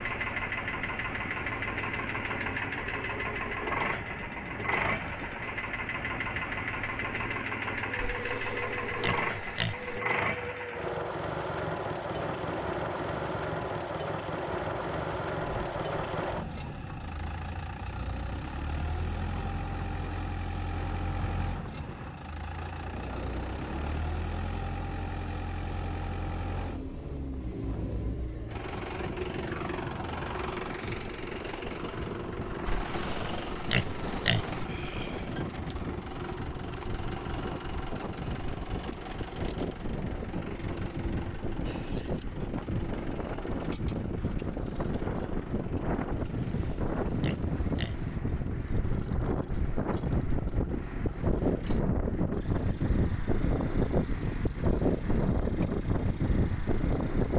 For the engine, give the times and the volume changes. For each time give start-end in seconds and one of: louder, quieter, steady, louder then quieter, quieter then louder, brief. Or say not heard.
0.0-57.3 quieter.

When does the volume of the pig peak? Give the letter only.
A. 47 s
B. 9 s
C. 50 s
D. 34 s
D.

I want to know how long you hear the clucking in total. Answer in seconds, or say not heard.
not heard.